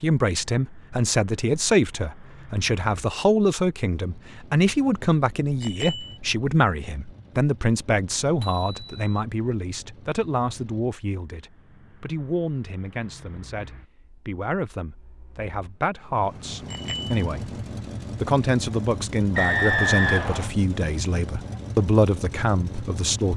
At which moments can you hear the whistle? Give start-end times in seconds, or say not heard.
19.4-20.5.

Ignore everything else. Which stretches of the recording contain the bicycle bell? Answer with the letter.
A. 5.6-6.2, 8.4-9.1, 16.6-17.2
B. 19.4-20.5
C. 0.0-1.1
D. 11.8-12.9
A.